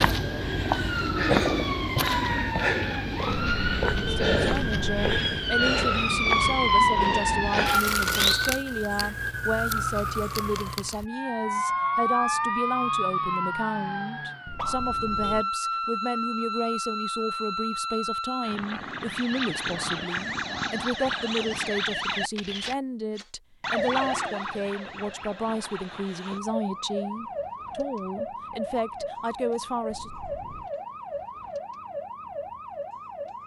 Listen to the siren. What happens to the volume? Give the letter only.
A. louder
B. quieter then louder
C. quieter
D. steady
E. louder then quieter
C.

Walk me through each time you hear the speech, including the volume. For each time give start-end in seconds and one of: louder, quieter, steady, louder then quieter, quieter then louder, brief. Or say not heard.
4.2-30.1 steady.